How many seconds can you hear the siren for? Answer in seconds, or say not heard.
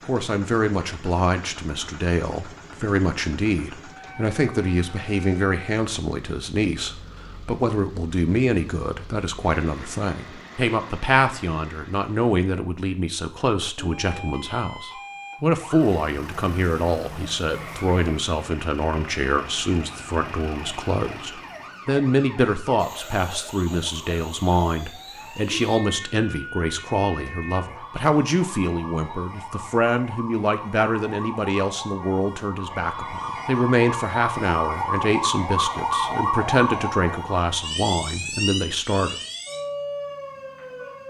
27 s.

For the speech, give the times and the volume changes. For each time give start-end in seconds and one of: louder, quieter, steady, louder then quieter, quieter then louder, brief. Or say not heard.
0.1-39.1 steady.